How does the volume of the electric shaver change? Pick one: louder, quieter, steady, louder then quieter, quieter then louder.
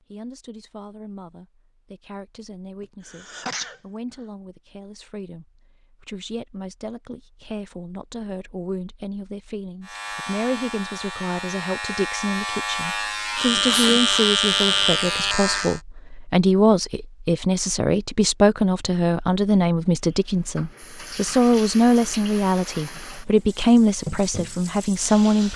louder.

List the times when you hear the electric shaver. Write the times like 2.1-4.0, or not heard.
9.8-15.8.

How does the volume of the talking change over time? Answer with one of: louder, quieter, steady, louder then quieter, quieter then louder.
louder.